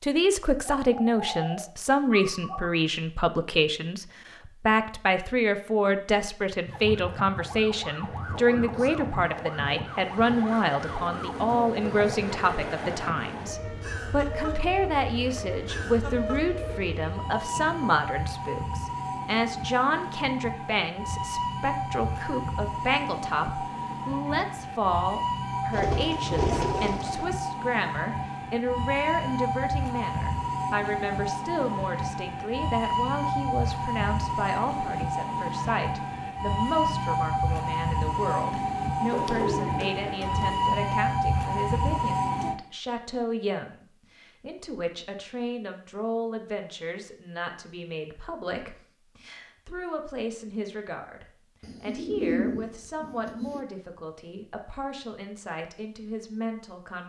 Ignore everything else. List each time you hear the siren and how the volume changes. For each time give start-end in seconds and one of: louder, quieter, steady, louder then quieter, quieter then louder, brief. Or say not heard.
6.7-42.5 louder.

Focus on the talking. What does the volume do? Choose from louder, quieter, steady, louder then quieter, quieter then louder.
quieter.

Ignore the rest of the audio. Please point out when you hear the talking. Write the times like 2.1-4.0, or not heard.
0.0-57.0.